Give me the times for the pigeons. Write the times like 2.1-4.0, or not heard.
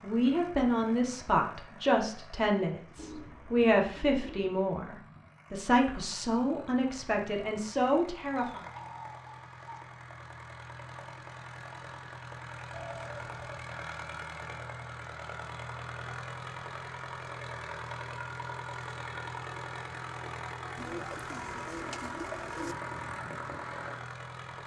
3.0-4.5, 8.3-9.8, 12.7-13.7, 20.8-22.8.